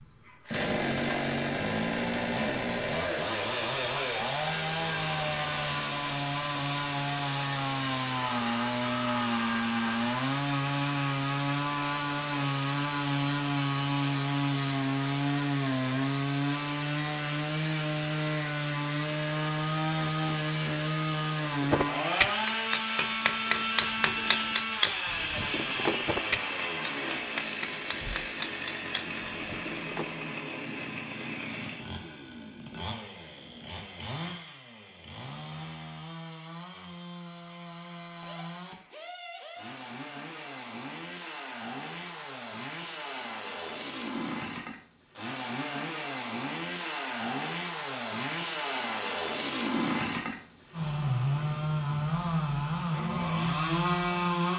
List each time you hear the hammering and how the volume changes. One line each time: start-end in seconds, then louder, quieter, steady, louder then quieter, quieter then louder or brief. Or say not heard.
21.6-30.1 quieter.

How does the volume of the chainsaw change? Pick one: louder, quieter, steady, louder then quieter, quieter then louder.
quieter then louder.